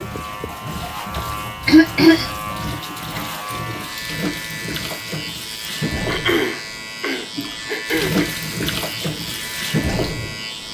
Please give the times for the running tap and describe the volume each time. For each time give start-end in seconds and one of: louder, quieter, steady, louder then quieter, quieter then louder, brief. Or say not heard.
0.0-10.6 louder.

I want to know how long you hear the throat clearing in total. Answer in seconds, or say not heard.
3 s.